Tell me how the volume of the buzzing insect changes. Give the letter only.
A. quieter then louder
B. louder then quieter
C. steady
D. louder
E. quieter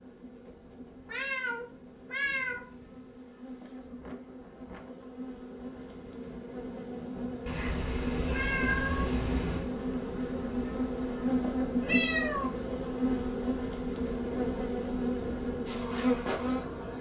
D.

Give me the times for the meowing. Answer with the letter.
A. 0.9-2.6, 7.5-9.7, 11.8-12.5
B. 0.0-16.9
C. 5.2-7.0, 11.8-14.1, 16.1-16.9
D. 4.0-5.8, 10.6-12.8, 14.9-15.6
A.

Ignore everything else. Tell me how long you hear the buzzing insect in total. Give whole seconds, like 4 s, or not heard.
17 s.